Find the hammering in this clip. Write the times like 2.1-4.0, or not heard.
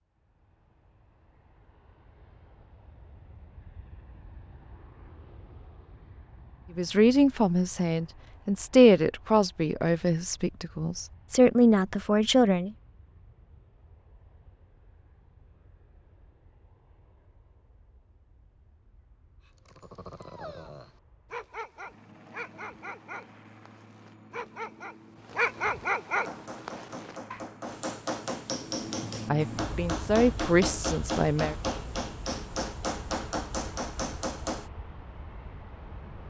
26.1-34.7.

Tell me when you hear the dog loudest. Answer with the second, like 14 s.
26 s.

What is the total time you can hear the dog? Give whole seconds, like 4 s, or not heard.
8 s.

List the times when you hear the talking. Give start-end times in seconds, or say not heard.
6.8-12.7, 29.3-31.6.